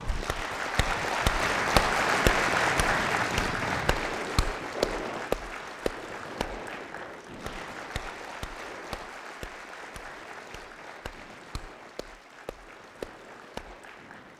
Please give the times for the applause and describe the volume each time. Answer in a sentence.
The applause can be heard from 0.0 to 14.3 s, getting quieter.